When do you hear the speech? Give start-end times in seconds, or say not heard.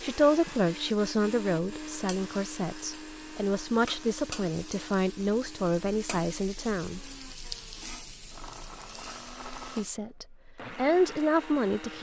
0.0-7.0, 9.6-11.9.